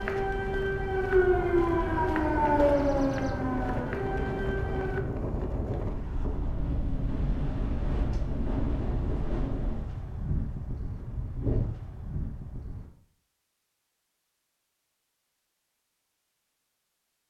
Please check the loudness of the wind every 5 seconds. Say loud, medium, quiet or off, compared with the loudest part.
loud, loud, loud, off.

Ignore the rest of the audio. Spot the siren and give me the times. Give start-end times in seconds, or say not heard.
0.0-5.0.